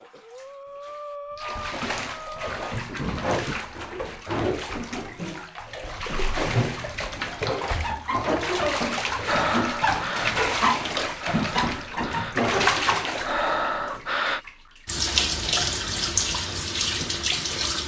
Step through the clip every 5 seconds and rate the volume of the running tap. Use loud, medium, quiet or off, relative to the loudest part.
medium, loud, loud, loud.